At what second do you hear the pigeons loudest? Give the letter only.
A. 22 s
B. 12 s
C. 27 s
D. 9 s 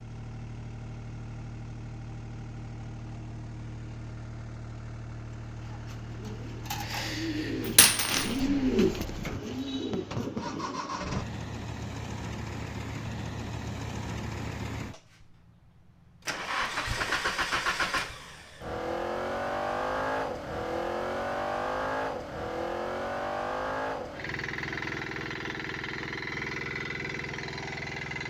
D.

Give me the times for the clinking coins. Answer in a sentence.
The clinking coins can be heard from 7.7 to 8.3 s.